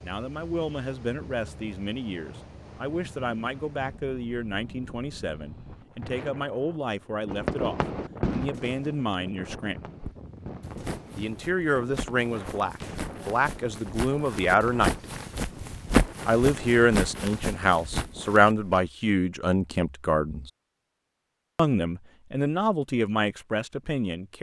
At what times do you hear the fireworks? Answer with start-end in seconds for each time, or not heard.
7.2-13.2.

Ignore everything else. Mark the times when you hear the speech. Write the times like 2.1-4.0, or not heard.
0.0-9.8, 11.2-14.9, 16.2-20.5, 21.6-24.3.